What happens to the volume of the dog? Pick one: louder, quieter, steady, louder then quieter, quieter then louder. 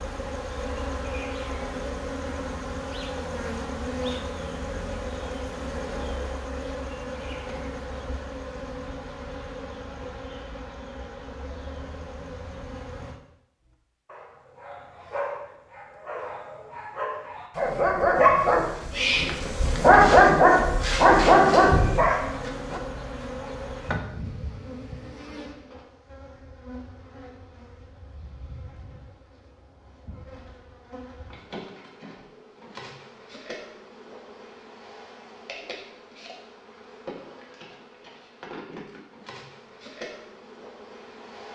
louder.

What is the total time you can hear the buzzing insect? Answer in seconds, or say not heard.
36 s.